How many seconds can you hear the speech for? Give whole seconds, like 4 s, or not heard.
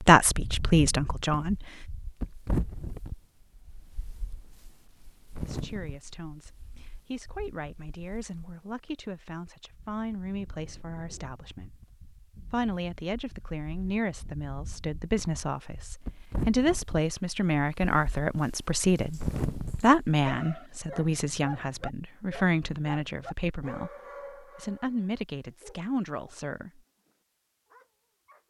22 s.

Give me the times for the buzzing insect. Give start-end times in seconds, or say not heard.
not heard.